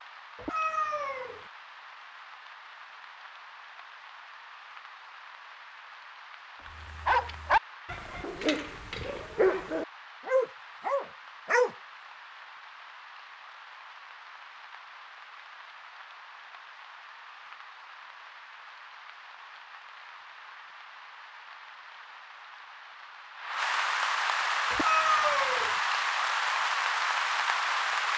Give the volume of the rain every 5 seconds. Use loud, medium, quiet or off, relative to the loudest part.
quiet, quiet, quiet, quiet, medium, loud.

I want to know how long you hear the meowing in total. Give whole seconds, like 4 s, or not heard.
2 s.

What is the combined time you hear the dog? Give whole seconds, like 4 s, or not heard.
5 s.